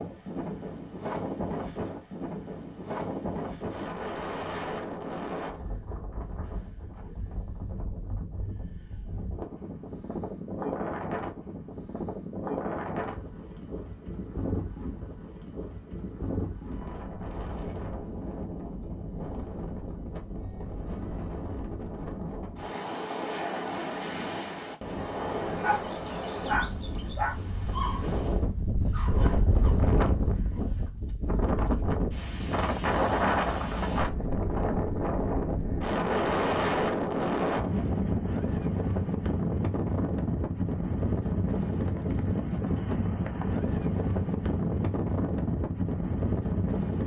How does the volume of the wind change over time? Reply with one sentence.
The volume of the wind goes up.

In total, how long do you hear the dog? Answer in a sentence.
The dog can be heard for 5 seconds in total.